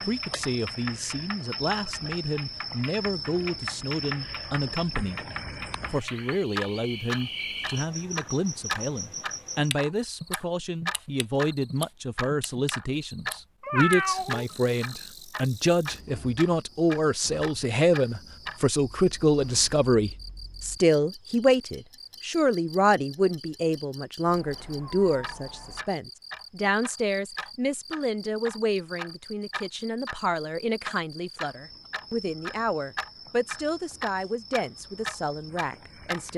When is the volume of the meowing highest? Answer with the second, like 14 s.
14 s.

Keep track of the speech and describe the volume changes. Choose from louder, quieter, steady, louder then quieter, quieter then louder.
louder then quieter.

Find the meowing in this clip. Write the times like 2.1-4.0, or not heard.
13.6-14.4, 24.2-25.9.